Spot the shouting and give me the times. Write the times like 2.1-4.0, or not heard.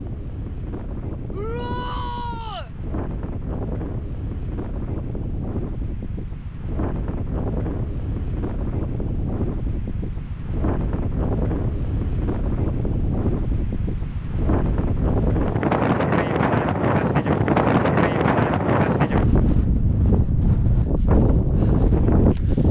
1.3-2.7.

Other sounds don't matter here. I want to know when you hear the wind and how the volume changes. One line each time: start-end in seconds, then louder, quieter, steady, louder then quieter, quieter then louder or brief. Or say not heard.
0.0-22.6 louder.